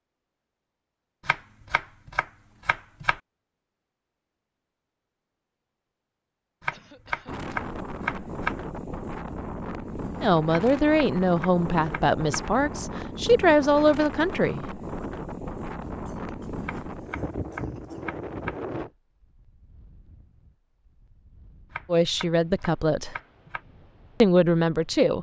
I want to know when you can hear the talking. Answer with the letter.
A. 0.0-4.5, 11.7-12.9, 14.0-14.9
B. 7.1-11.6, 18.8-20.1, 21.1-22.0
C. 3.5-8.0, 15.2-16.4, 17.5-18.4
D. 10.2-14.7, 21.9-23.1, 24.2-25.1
D.